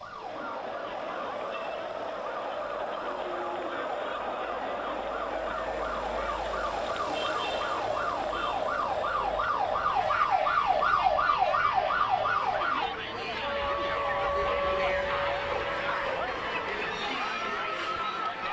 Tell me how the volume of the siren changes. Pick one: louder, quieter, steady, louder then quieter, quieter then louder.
louder then quieter.